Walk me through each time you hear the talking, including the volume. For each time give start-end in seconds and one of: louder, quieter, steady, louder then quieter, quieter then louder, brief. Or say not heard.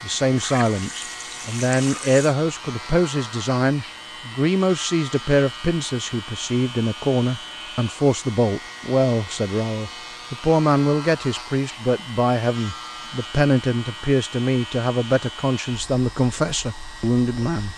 0.0-17.7 steady.